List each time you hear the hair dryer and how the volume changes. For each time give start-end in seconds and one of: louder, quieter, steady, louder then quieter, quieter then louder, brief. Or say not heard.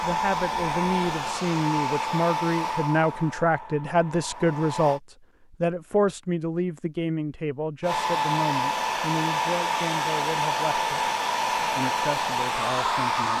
0.0-5.0 quieter
7.8-13.3 steady.